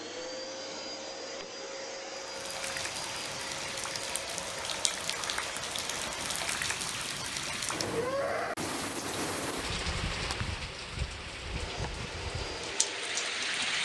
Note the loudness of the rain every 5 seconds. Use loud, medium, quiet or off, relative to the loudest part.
medium, medium, loud.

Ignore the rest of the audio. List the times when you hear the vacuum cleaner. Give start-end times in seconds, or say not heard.
0.0-6.3, 11.4-13.8.